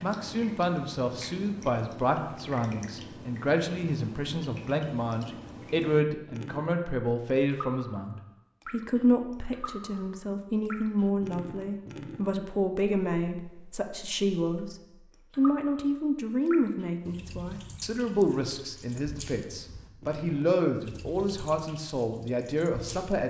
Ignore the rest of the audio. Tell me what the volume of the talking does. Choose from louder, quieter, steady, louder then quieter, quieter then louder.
steady.